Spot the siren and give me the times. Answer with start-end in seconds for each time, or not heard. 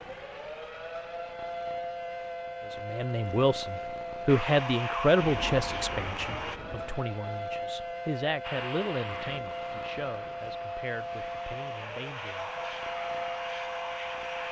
0.0-14.4.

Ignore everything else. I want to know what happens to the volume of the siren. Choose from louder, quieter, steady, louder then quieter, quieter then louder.
steady.